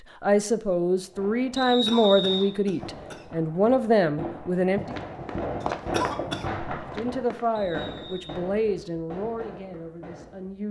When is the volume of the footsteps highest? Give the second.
6 s.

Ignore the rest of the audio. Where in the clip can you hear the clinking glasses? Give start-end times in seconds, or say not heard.
not heard.